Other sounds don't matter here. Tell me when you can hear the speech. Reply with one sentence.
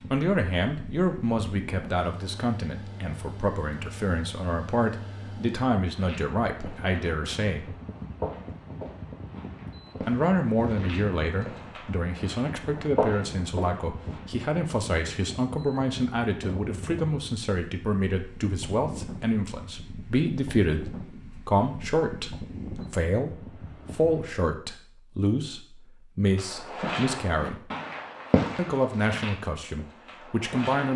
The speech can be heard from 0.1 to 7.8 s, from 10.0 to 27.7 s and from 28.6 to 30.9 s.